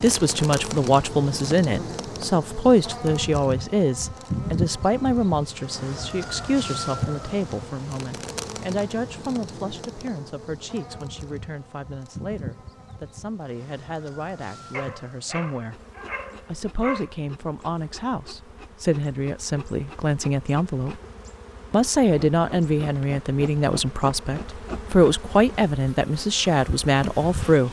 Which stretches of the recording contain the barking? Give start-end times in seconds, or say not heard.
14.7-17.1.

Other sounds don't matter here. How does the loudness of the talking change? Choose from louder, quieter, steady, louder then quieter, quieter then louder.
quieter then louder.